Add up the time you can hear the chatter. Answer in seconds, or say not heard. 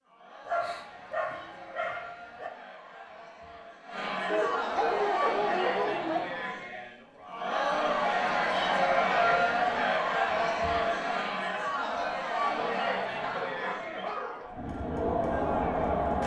16 s.